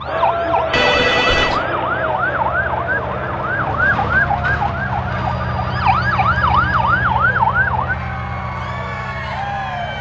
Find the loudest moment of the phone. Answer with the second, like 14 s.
1 s.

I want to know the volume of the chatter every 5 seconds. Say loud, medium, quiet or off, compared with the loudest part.
loud, medium.